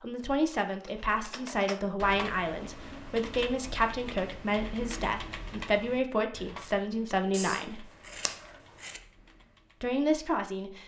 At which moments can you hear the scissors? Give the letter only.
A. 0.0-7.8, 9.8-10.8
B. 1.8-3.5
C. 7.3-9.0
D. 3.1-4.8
C.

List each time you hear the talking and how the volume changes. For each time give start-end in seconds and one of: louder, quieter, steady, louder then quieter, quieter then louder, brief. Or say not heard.
0.0-7.8 steady
9.8-10.8 brief.